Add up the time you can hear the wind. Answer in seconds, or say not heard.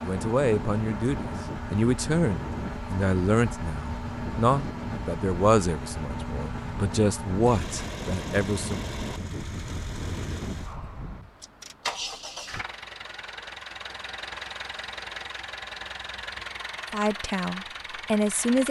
11 s.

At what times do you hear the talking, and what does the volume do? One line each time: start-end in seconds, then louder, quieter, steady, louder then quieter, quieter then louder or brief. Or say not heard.
0.0-8.8 steady
16.9-18.6 brief.